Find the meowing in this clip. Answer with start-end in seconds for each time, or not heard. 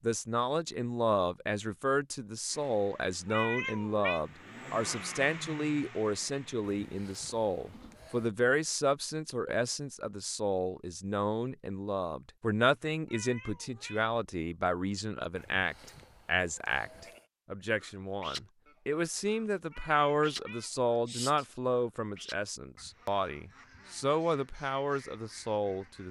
3.2-4.2, 13.1-14.1, 19.7-21.4.